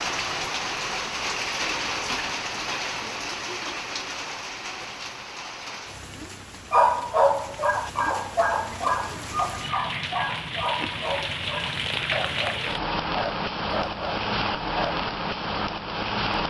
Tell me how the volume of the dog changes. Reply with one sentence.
The volume of the dog goes down.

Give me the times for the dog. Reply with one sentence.
The dog can be heard from 6.7 to 15.0 s.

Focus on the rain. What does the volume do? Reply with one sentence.
The volume of the rain goes down, then up.